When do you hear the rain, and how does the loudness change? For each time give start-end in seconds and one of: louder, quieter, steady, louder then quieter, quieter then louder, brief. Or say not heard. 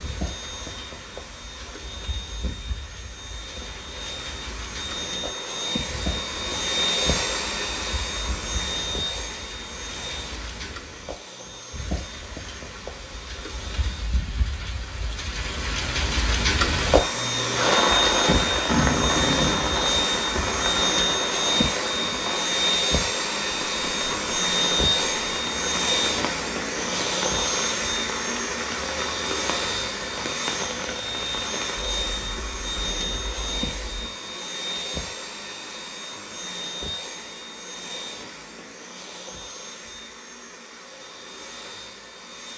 0.0-34.1 louder then quieter.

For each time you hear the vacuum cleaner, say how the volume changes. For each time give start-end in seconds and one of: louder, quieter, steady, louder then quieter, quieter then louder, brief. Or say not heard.
0.0-14.2 louder then quieter
16.8-42.5 quieter.